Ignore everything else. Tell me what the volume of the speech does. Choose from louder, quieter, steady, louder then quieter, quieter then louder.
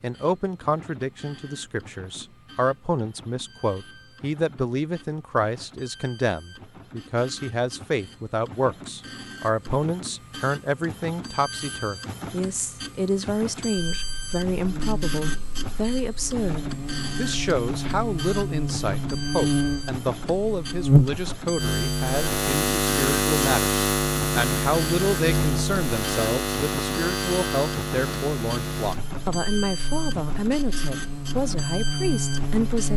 steady.